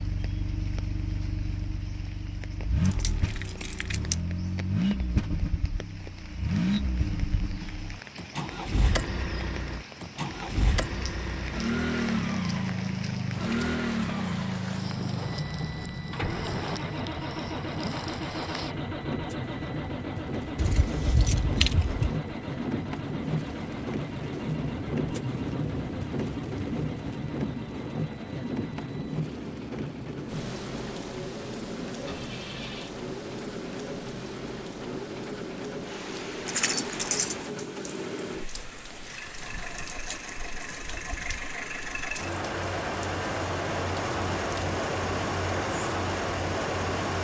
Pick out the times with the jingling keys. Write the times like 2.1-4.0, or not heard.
2.9-4.2, 20.6-22.2, 36.5-37.4.